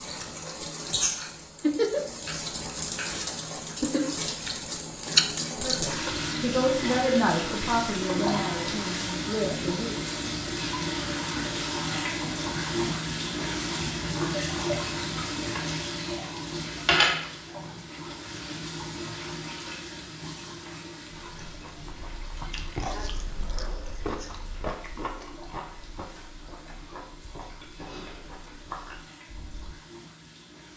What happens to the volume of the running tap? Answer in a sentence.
The loudness of the running tap goes down.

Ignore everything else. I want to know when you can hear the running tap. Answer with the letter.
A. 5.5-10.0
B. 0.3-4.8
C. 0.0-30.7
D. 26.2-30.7
C.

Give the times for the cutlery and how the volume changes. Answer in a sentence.
The cutlery can't be heard in this clip.